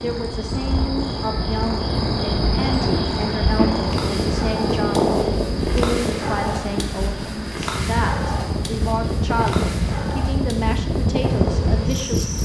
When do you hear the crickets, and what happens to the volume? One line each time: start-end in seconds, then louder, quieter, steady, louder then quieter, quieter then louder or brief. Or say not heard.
0.0-12.4 quieter.